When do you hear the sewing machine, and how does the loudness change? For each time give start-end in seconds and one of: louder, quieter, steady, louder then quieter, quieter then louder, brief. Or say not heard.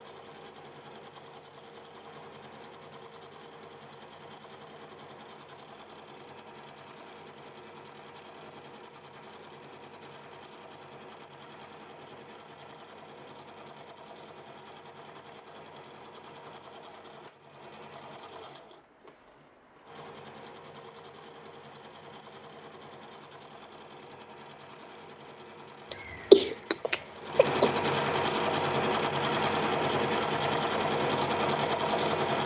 0.0-32.4 louder.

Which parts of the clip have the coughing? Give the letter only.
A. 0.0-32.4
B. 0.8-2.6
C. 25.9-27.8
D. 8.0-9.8
C.